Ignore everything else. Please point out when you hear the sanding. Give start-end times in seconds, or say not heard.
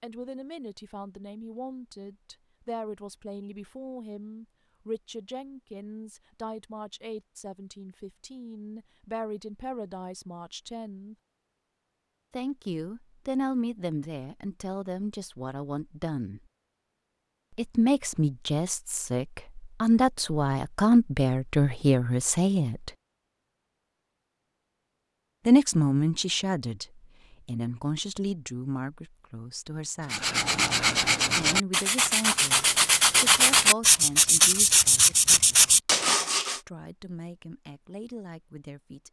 30.1-36.6.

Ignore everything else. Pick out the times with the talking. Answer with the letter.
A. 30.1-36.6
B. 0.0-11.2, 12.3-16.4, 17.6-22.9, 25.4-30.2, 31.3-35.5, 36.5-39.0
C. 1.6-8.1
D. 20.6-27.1
B.